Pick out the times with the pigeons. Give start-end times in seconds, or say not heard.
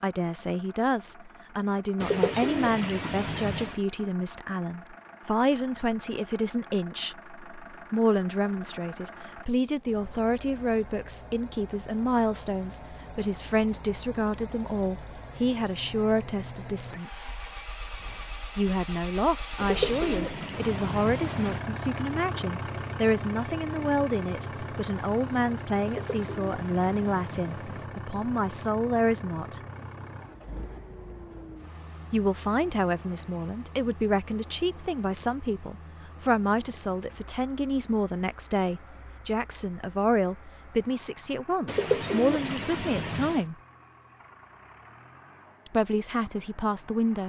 2.0-3.8, 19.6-21.6, 25.9-27.9, 41.6-43.5.